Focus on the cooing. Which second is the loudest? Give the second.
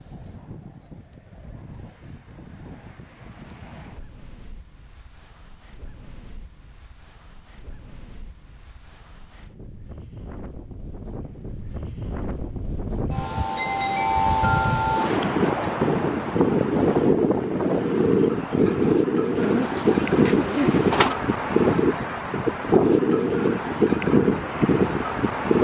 21 s.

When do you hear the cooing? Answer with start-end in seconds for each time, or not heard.
19.4-21.1.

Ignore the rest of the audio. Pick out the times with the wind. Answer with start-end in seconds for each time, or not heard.
0.0-25.5.